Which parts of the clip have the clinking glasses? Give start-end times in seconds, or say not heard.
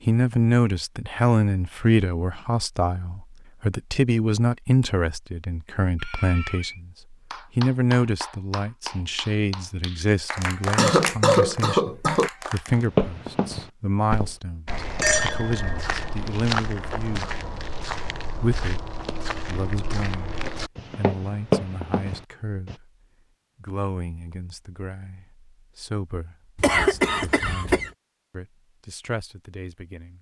15.0-15.9.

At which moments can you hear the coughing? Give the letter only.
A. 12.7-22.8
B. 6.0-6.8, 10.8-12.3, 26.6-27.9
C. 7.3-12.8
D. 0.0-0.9
B.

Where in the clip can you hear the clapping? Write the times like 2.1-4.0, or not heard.
7.3-12.8.